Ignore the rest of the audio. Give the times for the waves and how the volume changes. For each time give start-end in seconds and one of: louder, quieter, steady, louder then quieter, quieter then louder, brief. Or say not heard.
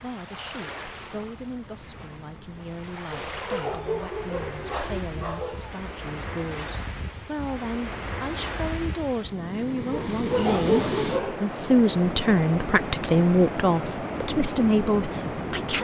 0.0-15.7 louder.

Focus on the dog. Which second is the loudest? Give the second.
11 s.